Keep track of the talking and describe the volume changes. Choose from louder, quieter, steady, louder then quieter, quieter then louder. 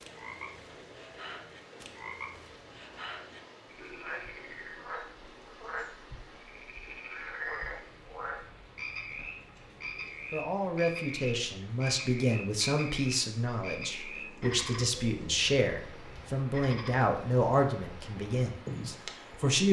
steady.